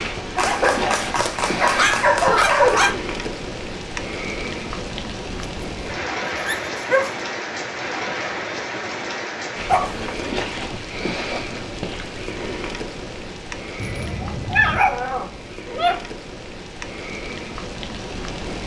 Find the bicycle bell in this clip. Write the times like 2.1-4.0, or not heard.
13.8-14.8.